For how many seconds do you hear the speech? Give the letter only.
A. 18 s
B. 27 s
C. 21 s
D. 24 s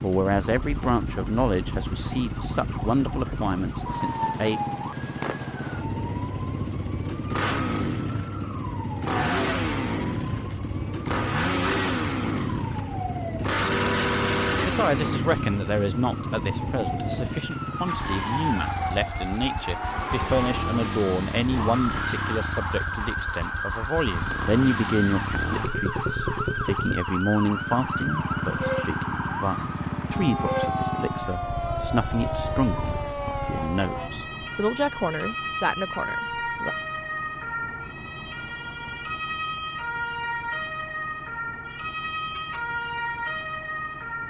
B.